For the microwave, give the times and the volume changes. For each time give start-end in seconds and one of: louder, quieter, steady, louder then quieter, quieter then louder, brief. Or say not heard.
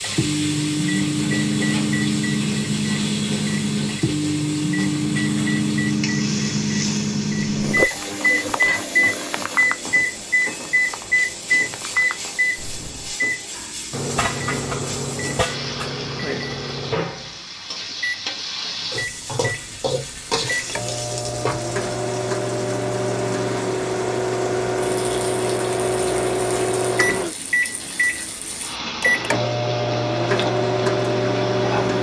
0.0-31.9 quieter then louder.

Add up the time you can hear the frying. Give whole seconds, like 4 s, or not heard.
32 s.